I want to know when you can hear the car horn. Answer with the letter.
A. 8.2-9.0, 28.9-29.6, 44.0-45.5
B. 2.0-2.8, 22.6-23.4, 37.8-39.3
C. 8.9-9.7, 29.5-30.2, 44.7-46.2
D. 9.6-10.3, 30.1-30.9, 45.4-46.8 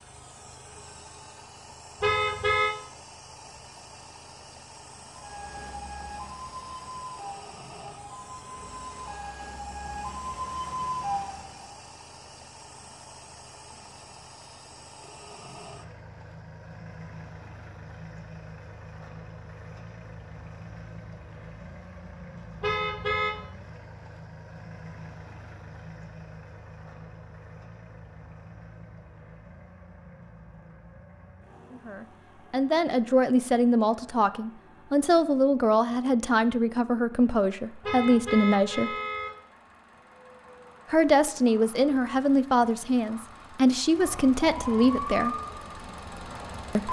B.